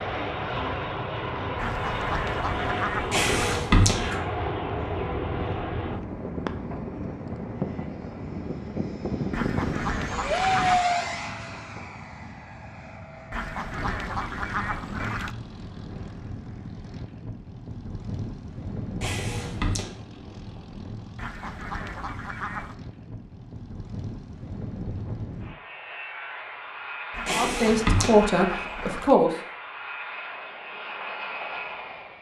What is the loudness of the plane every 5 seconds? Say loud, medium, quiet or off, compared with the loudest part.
loud, loud, loud, medium, medium, medium, medium.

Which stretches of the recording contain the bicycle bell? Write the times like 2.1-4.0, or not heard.
3.1-4.2, 19.0-19.9, 27.2-28.1.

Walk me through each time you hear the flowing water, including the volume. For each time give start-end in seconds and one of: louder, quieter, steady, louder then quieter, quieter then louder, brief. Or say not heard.
not heard.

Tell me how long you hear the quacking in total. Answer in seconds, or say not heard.
9 s.